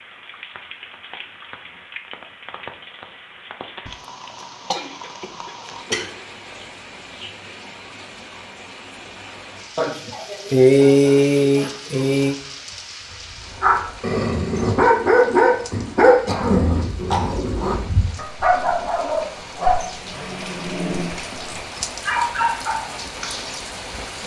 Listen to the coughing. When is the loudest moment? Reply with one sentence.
The loudest moment of the coughing is at 11 seconds.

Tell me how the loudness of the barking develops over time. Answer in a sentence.
The loudness of the barking goes down.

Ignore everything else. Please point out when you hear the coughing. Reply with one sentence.
The coughing can be heard from 3.9 to 6.1 s, from 9.8 to 12.3 s and from 16.2 to 17.8 s.